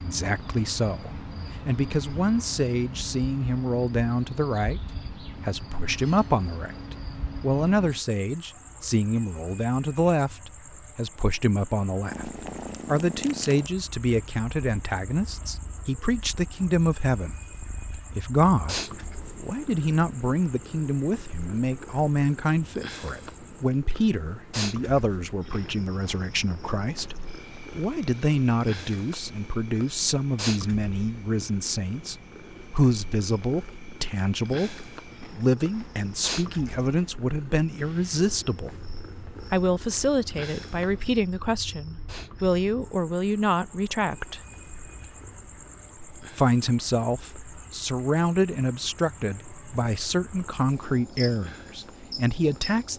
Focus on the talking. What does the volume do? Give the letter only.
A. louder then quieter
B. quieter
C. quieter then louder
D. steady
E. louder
D.